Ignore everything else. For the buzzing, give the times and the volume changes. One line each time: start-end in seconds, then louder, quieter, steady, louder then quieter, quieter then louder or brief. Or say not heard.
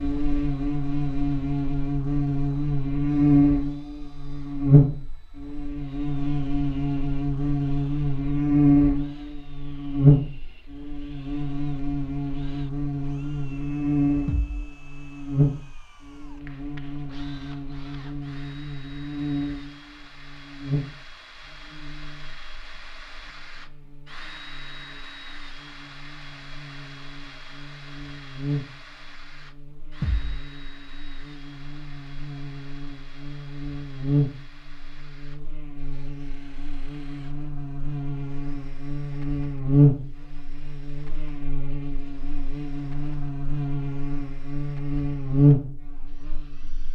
0.0-46.9 quieter then louder.